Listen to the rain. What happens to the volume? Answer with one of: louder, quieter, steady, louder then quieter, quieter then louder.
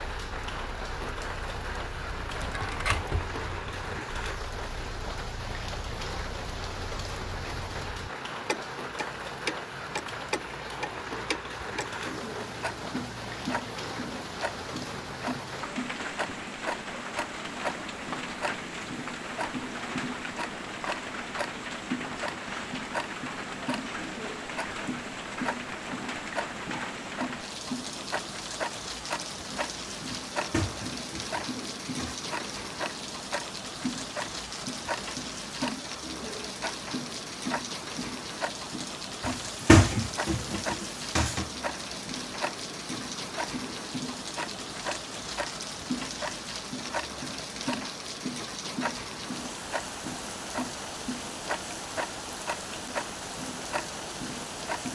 steady.